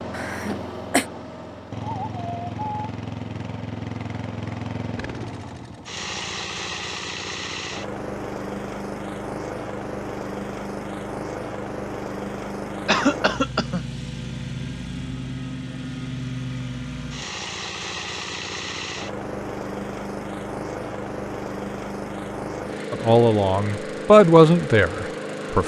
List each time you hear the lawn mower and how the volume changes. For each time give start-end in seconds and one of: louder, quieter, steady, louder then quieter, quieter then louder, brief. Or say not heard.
0.0-25.6 steady.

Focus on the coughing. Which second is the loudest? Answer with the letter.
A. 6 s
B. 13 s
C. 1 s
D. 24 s
B.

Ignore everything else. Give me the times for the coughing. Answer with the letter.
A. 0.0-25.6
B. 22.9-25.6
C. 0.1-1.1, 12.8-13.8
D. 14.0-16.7
C.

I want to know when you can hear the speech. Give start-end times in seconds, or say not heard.
22.9-25.6.